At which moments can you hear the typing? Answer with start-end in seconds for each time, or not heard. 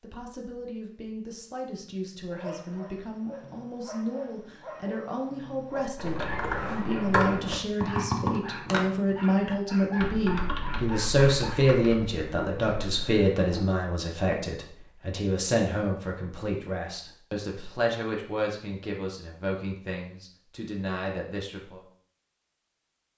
6.0-13.7.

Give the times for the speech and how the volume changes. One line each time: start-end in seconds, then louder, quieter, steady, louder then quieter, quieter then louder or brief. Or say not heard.
0.0-21.8 louder then quieter.